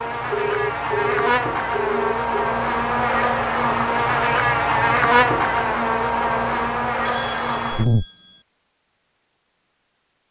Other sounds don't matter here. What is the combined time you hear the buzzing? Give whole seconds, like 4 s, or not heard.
8 s.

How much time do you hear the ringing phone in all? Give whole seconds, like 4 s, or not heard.
4 s.